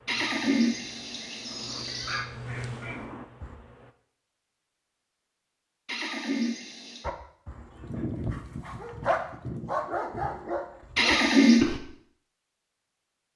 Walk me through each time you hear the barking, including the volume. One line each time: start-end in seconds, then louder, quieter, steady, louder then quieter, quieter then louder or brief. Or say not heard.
1.8-3.5 brief
7.0-11.8 louder then quieter.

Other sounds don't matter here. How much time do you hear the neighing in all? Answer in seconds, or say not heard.
4 s.